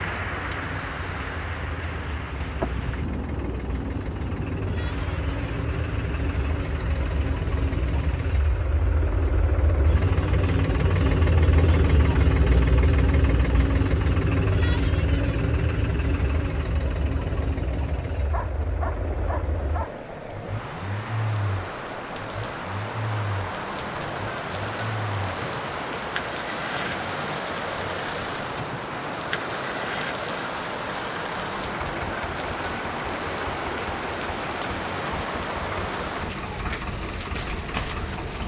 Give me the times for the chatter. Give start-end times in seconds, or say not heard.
not heard.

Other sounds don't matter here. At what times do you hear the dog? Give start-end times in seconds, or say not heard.
18.3-19.9.